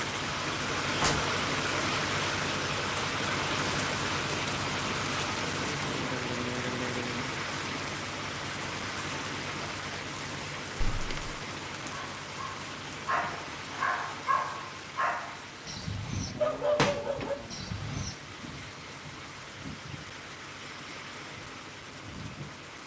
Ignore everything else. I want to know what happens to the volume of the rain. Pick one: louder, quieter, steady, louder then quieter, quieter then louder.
quieter.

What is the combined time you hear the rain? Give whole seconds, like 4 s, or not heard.
23 s.